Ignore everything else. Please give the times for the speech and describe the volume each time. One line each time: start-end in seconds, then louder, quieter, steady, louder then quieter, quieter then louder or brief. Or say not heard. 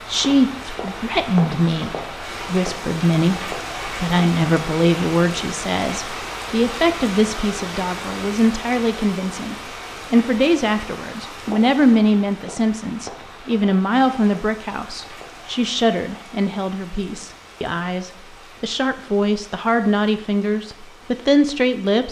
0.1-22.0 steady.